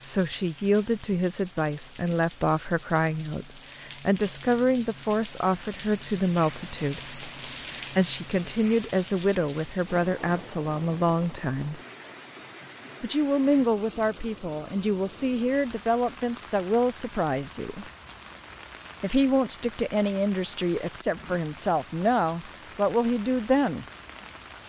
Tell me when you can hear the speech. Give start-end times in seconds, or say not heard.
0.0-11.8, 13.0-17.9, 19.0-23.9.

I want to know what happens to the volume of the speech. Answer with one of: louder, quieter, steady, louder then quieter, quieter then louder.
steady.